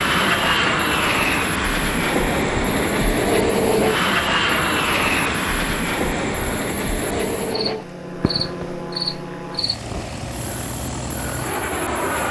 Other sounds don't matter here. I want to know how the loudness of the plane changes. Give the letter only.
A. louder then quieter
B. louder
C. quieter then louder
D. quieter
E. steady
D.